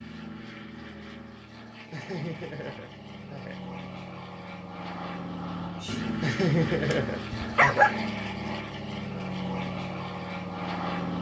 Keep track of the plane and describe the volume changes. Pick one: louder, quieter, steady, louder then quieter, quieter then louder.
louder.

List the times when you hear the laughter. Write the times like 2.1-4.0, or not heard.
1.9-3.6, 6.2-7.9.